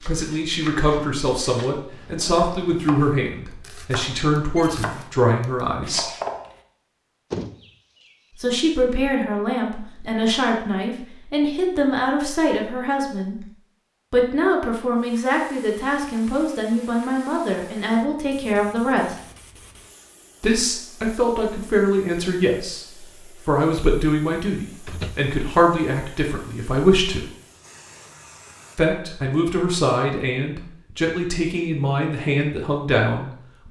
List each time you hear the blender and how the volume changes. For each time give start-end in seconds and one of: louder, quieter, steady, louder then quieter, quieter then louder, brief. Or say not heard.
not heard.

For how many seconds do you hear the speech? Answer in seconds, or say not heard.
28 s.